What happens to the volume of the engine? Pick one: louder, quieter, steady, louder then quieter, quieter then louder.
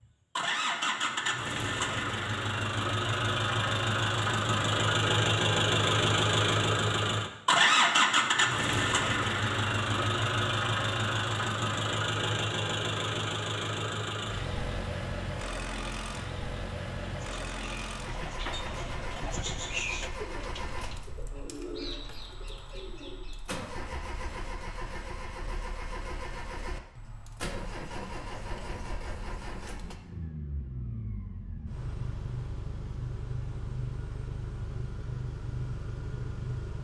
quieter.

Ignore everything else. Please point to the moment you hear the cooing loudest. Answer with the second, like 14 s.
20 s.